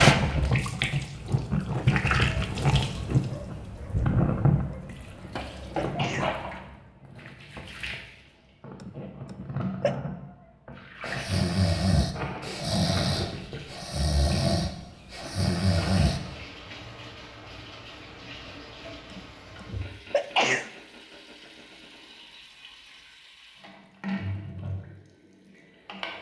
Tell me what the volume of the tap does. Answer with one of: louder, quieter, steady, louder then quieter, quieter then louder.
quieter.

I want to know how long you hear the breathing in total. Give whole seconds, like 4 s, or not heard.
5 s.